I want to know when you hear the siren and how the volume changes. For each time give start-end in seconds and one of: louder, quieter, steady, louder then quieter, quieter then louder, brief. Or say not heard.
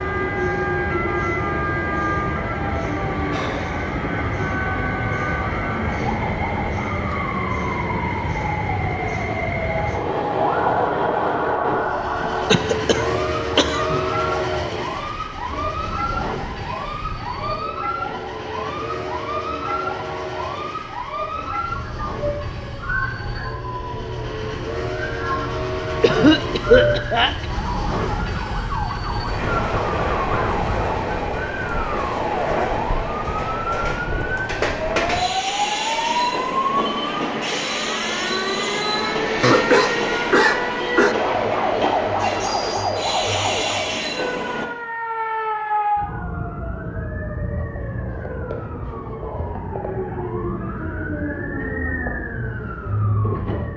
0.0-53.7 steady.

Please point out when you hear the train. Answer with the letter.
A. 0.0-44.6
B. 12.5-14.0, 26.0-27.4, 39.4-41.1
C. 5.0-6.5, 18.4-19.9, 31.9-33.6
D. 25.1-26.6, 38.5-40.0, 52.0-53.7
A.